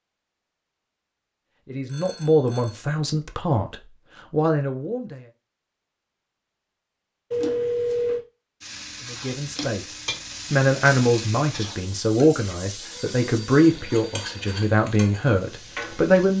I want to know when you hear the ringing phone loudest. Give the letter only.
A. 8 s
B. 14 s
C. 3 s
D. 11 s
A.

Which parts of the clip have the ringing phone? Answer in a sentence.
You can hear the ringing phone from 1.9 to 2.8 s, from 7.3 to 8.2 s and from 12.9 to 14.6 s.